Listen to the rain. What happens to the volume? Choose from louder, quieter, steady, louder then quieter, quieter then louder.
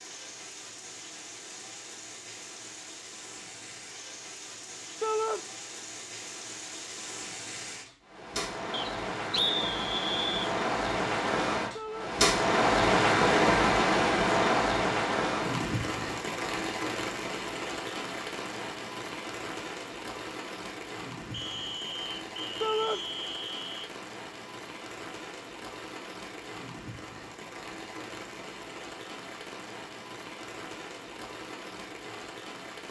louder then quieter.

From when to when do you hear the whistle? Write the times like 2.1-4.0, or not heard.
8.7-10.5, 21.3-23.9.